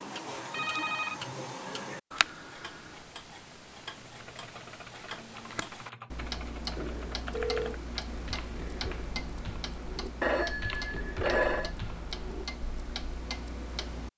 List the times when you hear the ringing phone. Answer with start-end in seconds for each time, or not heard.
0.3-1.2, 6.8-7.8, 10.2-11.7.